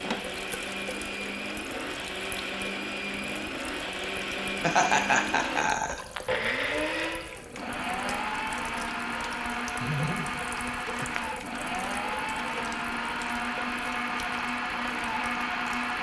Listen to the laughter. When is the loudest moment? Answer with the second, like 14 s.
5 s.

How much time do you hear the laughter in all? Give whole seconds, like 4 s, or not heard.
3 s.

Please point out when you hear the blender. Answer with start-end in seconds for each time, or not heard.
0.0-15.9.